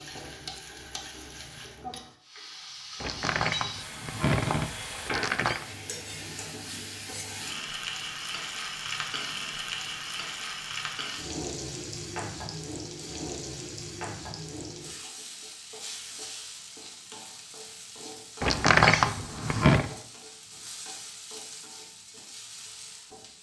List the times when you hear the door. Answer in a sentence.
The door can be heard from 3.0 to 5.7 s and from 18.4 to 19.9 s.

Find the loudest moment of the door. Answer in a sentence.
The loudest moment of the door is at 19 seconds.